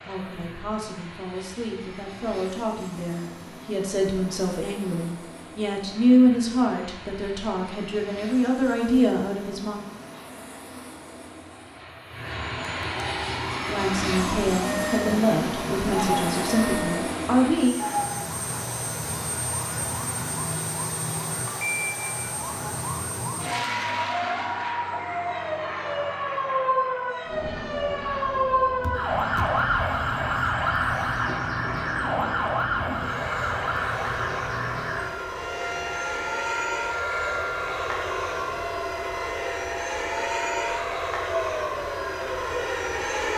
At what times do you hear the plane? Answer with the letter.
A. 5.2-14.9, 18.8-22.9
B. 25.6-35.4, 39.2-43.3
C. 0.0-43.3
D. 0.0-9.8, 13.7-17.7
C.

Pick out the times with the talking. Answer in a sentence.
The talking can be heard from 0.0 to 9.8 s and from 13.7 to 17.7 s.